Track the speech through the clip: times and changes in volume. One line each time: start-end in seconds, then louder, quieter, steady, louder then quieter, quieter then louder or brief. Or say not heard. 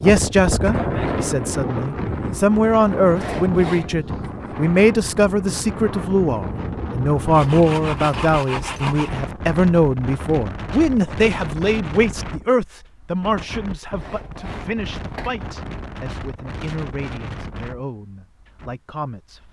0.0-19.4 quieter.